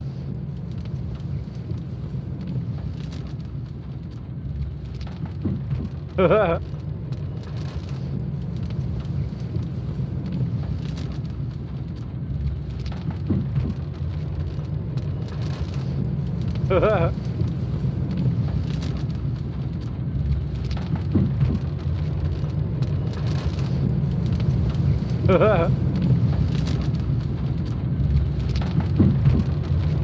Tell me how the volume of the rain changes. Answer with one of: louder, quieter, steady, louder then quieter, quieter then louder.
louder.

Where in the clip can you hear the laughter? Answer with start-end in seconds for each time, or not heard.
6.2-6.6, 16.7-17.1, 25.2-25.7.